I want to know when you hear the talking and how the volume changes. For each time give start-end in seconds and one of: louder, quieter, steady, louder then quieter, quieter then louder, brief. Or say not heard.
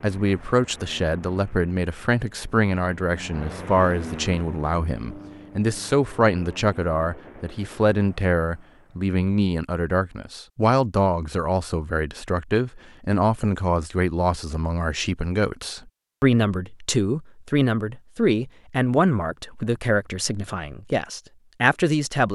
0.0-22.3 steady.